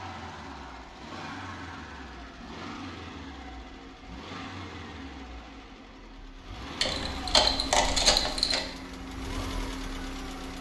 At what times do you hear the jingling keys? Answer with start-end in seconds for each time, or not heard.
6.8-8.6.